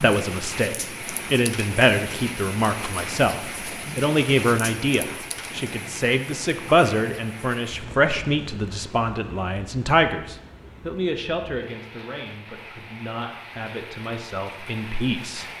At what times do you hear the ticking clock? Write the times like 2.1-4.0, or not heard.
not heard.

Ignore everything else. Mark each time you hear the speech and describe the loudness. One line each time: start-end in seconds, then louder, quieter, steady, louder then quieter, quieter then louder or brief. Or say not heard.
0.0-15.4 quieter.